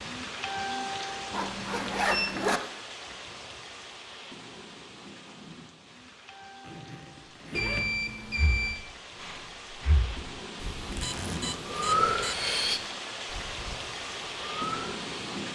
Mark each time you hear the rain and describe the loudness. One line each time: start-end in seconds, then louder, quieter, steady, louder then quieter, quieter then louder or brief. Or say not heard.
0.0-15.5 quieter then louder.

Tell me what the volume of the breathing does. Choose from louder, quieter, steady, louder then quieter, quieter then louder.
louder then quieter.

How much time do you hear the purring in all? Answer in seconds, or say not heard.
not heard.